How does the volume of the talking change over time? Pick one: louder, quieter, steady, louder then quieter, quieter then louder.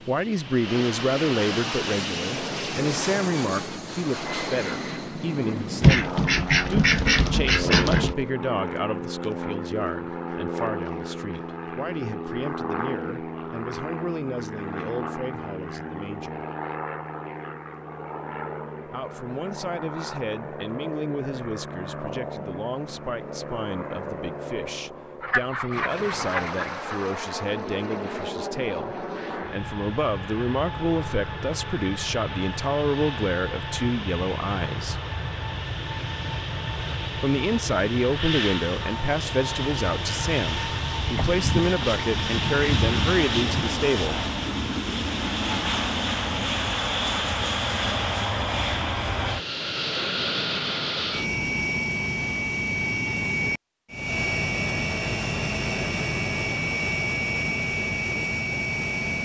quieter then louder.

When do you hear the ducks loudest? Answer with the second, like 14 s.
6 s.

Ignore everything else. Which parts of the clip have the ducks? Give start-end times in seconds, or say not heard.
5.8-8.2, 25.2-26.9, 41.1-43.8.